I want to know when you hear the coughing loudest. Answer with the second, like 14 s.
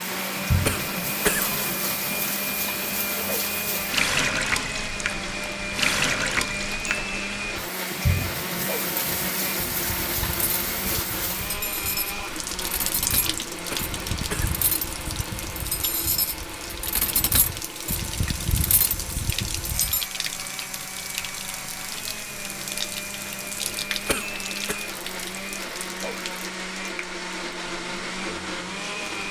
1 s.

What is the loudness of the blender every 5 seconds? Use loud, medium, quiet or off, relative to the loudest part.
loud, loud, loud, medium, medium, loud.